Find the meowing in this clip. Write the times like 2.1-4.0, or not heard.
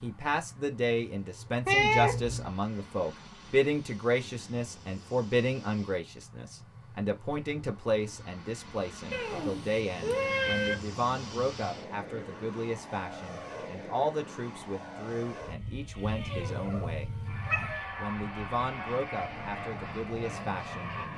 1.6-2.5, 9.1-10.8, 16.1-17.8.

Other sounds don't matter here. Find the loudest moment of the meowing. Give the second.
2 s.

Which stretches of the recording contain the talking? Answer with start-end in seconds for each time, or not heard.
0.0-20.9.